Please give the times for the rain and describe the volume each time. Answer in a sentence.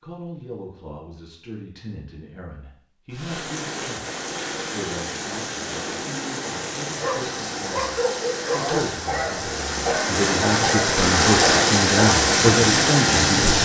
You can hear the rain from 3.1 to 13.6 s, getting louder.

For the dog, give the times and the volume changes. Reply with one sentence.
You can hear the dog from 7.0 to 12.2 s, at a steady volume.